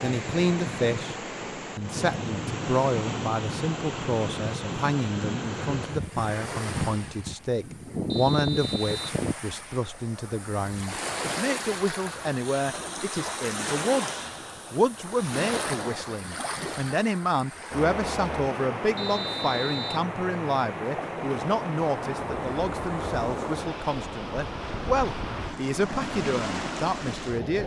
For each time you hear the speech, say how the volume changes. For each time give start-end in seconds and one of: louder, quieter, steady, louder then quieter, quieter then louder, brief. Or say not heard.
0.0-1.1 brief
1.8-27.6 steady.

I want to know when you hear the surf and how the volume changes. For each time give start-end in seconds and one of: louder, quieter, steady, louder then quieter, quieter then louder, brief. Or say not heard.
0.0-27.6 steady.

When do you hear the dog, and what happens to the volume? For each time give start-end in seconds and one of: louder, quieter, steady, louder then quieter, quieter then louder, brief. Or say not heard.
not heard.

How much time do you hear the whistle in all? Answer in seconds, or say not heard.
2 s.